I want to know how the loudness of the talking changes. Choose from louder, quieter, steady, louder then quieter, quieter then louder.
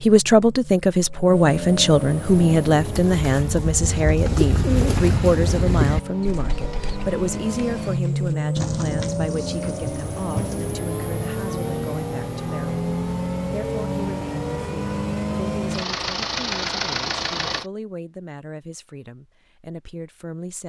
quieter.